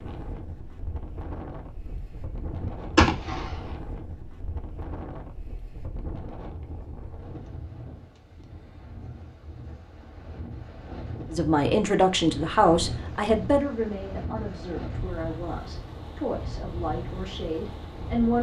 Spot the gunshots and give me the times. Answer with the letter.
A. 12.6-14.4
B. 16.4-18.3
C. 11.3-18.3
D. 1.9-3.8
D.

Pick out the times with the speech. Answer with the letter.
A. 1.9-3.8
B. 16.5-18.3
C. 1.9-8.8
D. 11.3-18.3
D.